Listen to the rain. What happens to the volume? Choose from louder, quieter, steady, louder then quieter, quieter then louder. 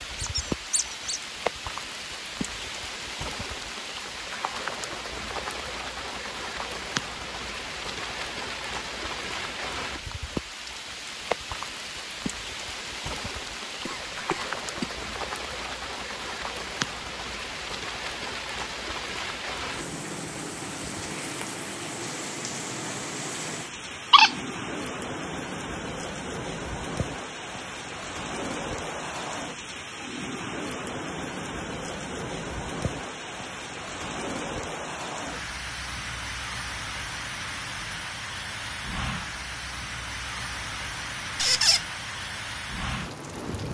steady.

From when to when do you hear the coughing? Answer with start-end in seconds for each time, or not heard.
13.8-15.1.